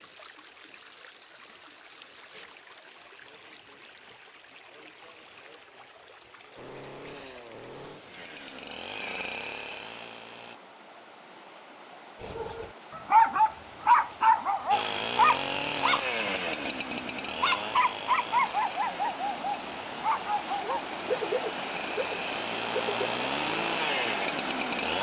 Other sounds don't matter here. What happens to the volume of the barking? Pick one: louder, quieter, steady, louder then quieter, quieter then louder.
quieter.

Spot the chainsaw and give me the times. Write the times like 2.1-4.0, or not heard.
6.5-10.6, 14.7-24.9.